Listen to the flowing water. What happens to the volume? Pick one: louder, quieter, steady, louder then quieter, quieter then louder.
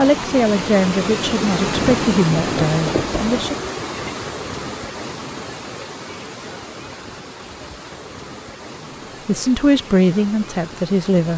quieter.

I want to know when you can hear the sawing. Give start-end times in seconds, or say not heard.
not heard.